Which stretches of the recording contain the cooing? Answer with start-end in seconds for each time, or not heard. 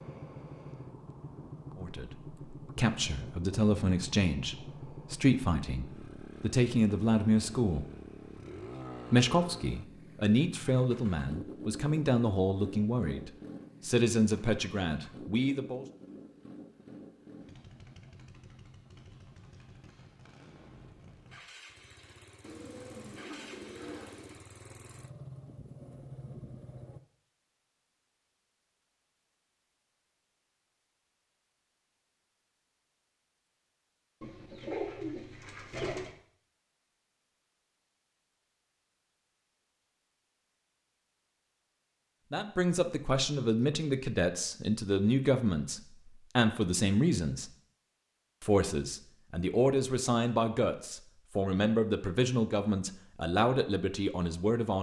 22.4-24.4, 34.2-36.1.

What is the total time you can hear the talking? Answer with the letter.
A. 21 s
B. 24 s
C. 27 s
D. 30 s
B.